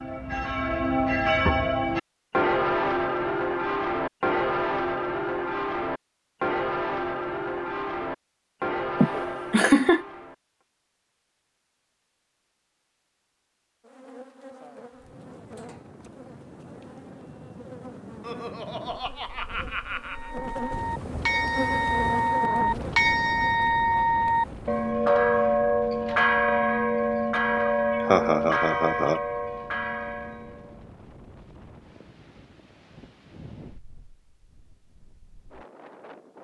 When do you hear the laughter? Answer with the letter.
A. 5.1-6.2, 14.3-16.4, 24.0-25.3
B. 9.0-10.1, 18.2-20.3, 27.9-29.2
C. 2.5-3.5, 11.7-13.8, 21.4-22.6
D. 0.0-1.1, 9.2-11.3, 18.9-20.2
B.